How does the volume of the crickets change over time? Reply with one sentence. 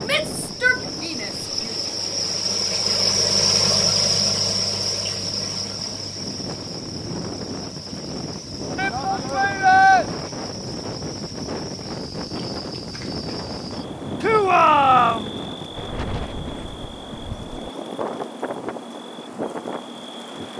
The loudness of the crickets goes down.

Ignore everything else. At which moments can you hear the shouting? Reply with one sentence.
You can hear the shouting from 0.0 to 1.8 s, from 8.8 to 10.1 s and from 14.2 to 15.3 s.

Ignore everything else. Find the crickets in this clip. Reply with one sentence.
The crickets can be heard from 0.0 to 20.5 s.